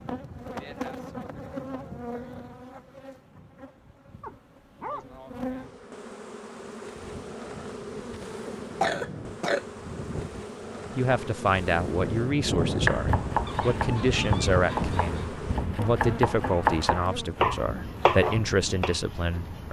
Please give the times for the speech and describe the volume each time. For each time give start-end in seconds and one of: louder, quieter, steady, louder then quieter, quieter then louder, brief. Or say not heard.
10.9-19.6 steady.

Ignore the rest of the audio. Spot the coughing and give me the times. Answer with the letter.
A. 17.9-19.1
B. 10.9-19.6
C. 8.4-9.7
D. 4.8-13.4
C.